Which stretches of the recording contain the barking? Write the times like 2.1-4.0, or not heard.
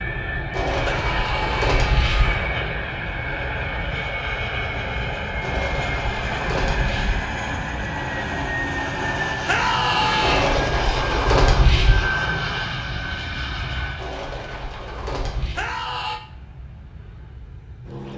not heard.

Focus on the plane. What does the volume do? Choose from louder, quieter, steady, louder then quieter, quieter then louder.
quieter.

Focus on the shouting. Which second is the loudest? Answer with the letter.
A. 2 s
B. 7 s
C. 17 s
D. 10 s
D.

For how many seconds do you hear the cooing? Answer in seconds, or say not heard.
7 s.